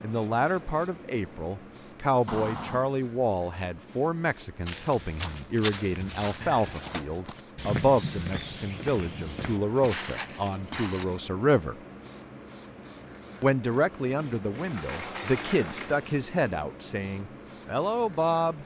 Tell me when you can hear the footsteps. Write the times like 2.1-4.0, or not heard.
4.7-11.1.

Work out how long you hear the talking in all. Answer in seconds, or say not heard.
17 s.